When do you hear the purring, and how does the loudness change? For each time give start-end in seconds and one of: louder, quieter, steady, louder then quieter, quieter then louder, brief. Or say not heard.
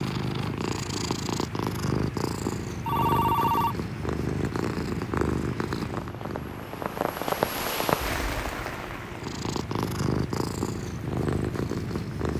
0.0-12.3 quieter then louder.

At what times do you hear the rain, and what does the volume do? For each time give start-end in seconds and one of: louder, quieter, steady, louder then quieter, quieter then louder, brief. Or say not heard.
0.0-12.3 louder then quieter.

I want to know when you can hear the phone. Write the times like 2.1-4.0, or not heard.
2.9-3.8.